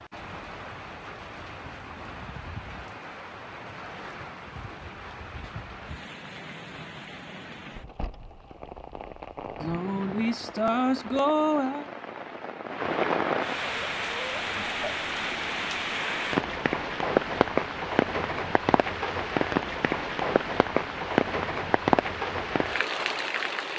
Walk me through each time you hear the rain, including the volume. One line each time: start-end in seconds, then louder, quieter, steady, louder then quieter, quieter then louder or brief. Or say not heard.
0.0-23.7 louder.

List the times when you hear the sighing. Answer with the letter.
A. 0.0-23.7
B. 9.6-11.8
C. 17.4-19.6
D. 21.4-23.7
B.